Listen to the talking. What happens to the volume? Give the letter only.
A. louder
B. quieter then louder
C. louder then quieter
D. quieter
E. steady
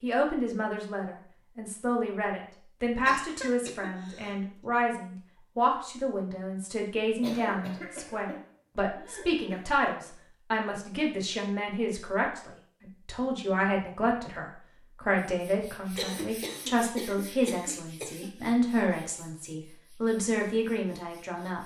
E.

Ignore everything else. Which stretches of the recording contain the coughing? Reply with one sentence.
The coughing can be heard from 3.0 to 4.5 s, from 7.2 to 9.7 s and from 15.9 to 18.3 s.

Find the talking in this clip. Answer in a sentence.
You can hear the talking from 0.0 to 21.6 s.